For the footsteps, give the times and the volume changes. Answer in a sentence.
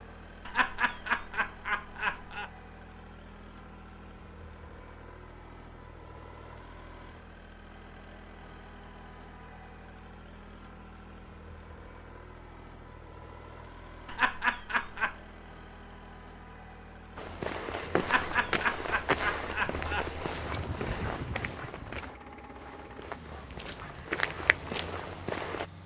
You can hear the footsteps from 17.1 to 25.6 s, getting quieter then louder.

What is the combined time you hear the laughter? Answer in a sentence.
The laughter can be heard for 5 seconds in total.